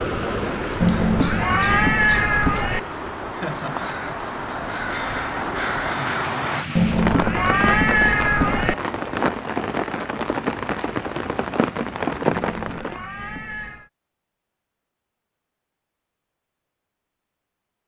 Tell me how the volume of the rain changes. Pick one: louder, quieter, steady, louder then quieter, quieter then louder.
quieter then louder.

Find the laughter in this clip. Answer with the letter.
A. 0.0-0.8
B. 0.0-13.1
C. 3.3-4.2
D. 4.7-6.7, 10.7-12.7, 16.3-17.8
C.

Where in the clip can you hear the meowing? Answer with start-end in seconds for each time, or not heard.
0.8-2.8, 6.8-8.8, 12.4-13.9.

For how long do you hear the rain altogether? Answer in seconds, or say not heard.
13 s.